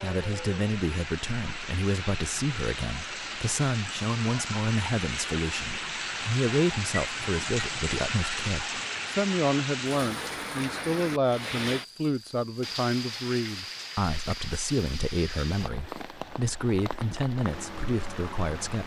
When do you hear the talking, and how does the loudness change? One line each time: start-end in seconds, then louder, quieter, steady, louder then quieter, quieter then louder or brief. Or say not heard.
0.0-18.8 steady.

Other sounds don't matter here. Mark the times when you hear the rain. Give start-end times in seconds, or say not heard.
0.0-18.8.